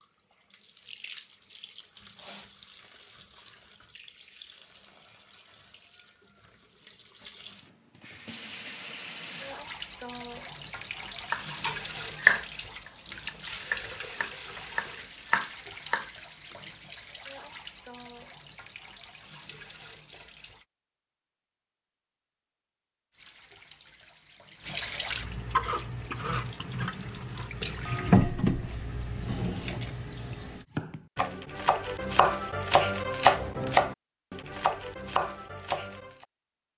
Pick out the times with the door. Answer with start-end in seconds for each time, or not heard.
not heard.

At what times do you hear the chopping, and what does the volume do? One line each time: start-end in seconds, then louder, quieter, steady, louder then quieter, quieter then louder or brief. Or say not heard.
11.3-12.4 brief
13.2-16.1 brief
30.8-36.2 louder then quieter.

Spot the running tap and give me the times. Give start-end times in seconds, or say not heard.
0.0-20.6, 23.1-30.6.